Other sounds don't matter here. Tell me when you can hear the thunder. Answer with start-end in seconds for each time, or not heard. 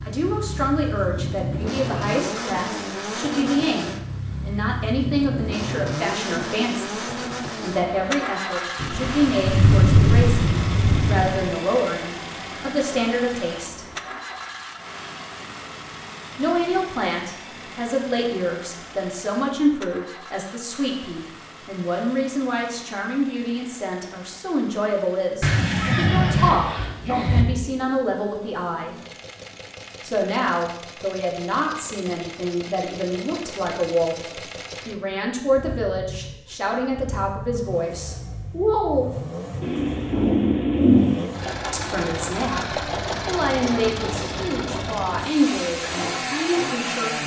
8.8-11.5, 39.6-41.2.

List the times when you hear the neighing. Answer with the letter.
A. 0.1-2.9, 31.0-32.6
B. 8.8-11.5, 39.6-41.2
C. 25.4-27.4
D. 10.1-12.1
C.